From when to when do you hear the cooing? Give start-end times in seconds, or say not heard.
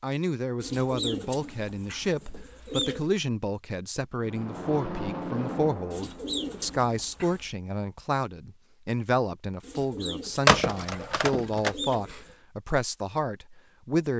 0.6-3.0, 5.9-7.5, 9.6-12.3.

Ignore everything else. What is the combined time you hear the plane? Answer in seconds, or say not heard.
3 s.